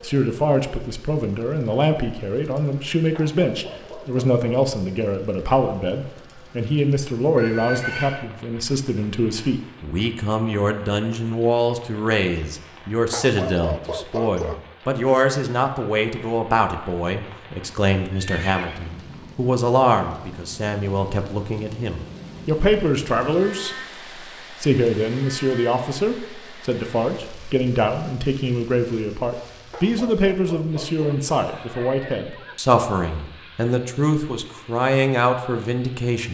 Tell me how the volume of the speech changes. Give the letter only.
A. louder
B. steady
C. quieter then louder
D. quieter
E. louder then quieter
B.